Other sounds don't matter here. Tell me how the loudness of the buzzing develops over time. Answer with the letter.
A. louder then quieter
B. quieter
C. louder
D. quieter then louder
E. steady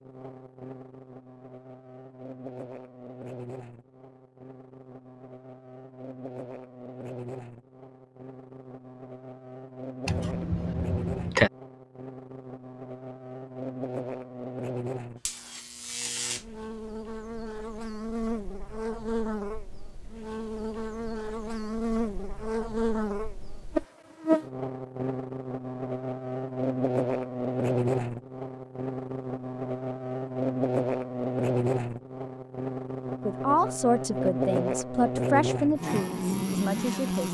C.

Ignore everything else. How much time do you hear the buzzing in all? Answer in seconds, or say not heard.
37 s.